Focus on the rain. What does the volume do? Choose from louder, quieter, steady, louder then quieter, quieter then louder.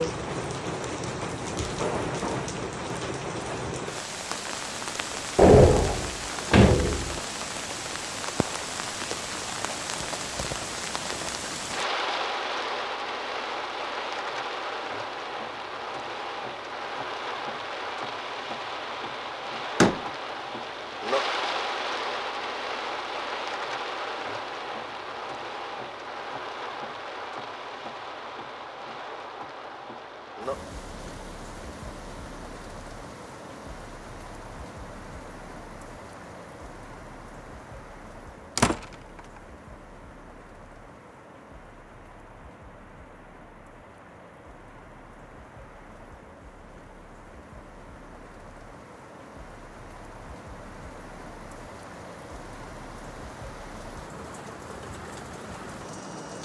quieter.